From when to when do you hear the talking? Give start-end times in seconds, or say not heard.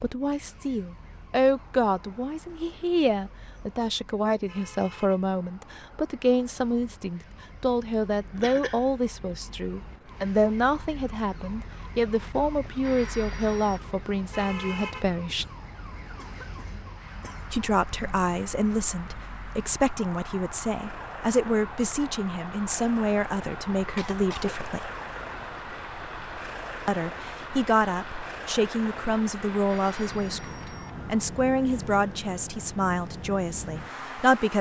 0.0-15.4, 17.5-24.9, 26.9-34.5.